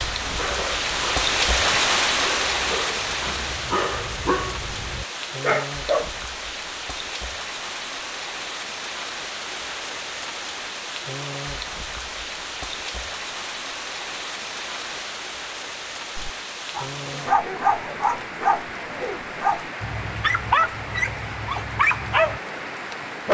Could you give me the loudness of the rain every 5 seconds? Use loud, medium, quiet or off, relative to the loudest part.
loud, medium, medium, medium, medium.